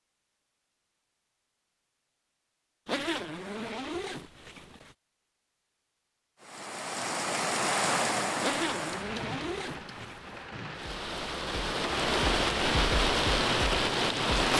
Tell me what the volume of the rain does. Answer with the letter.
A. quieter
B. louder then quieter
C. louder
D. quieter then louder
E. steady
D.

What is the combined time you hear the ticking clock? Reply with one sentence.
You can't hear the ticking clock here.